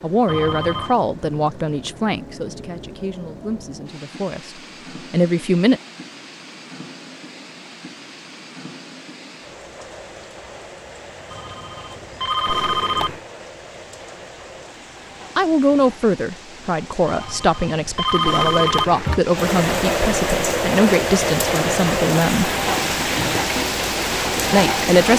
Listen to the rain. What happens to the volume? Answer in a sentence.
The loudness of the rain goes up.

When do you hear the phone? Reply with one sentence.
The phone can be heard from 0.2 to 0.9 s, from 11.3 to 13.2 s and from 17.1 to 19.2 s.